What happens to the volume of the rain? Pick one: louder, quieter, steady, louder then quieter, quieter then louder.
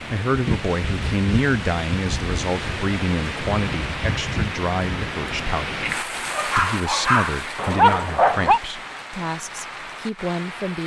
quieter.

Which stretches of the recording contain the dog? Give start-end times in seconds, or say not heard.
6.3-8.6.